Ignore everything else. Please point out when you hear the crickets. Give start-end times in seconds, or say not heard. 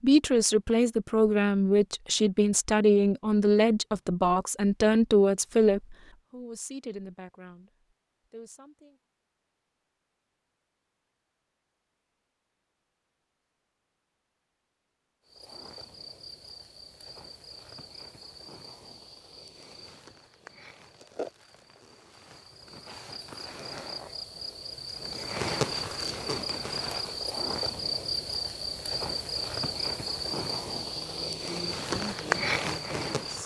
15.2-33.4.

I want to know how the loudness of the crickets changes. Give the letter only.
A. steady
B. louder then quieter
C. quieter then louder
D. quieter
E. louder
E.